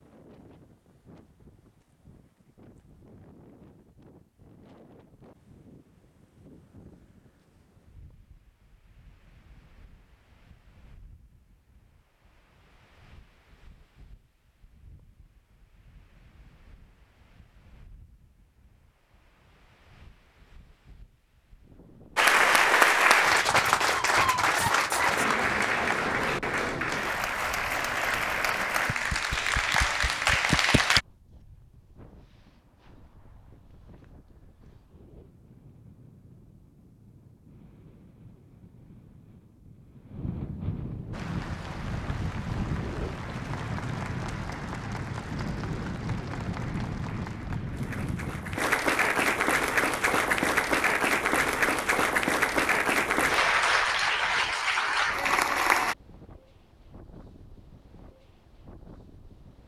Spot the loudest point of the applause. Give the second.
23 s.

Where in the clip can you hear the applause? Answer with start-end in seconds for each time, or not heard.
22.1-31.0, 41.1-56.0.